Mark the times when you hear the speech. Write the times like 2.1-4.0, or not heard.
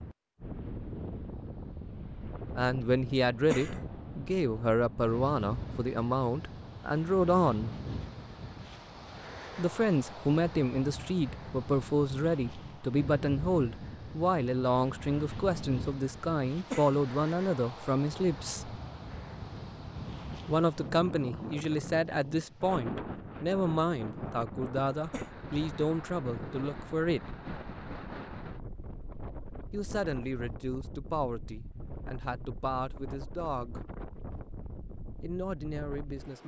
2.5-7.7, 9.6-18.8, 20.4-27.4, 29.7-33.8, 35.2-36.4.